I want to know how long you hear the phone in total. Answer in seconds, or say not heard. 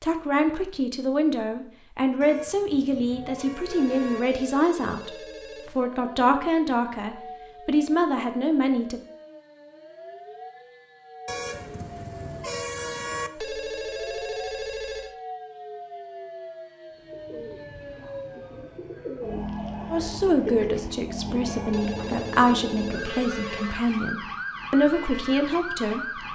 6 s.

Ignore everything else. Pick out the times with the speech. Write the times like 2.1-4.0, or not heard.
0.0-5.2, 5.8-9.0, 19.9-26.2.